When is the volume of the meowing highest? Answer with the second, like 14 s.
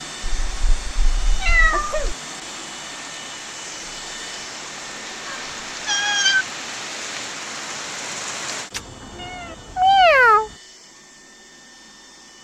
10 s.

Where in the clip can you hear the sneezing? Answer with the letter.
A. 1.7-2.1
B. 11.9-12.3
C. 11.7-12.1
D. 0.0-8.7
A.